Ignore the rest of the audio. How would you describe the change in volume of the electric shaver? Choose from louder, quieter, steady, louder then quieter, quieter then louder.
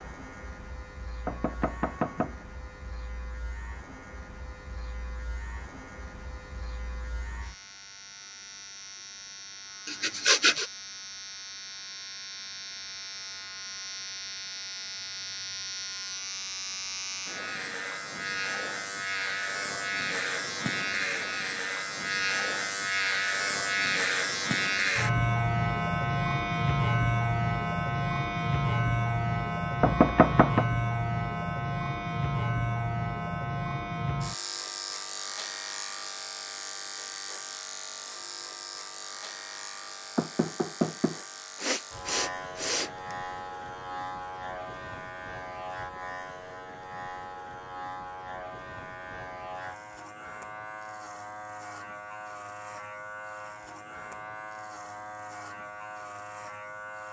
louder then quieter.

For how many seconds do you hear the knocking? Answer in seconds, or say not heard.
3 s.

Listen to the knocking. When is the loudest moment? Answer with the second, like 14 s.
30 s.